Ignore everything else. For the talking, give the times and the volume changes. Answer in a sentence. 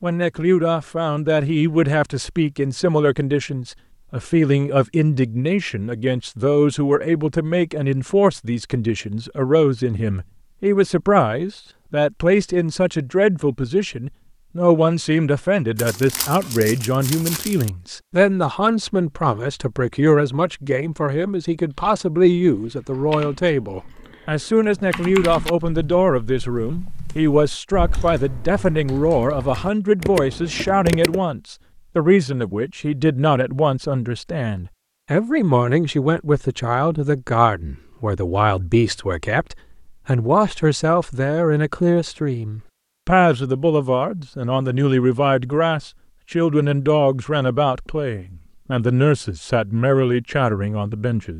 You can hear the talking from 0.0 to 51.3 s, at a steady volume.